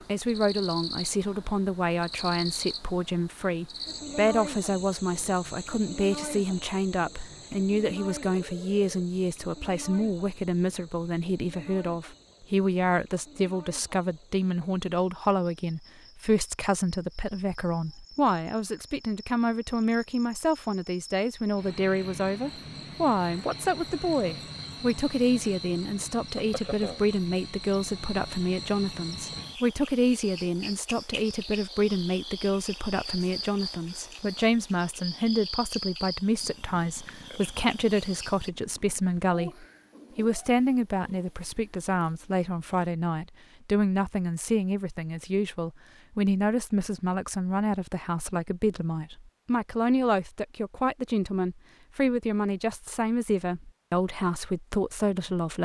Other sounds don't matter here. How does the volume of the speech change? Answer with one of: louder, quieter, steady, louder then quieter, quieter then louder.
steady.